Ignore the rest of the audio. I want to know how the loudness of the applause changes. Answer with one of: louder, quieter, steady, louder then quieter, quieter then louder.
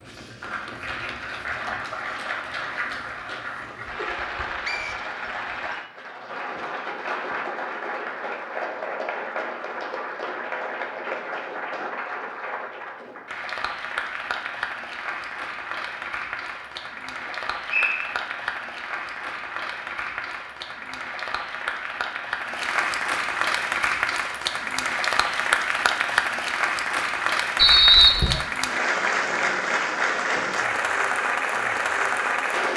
louder.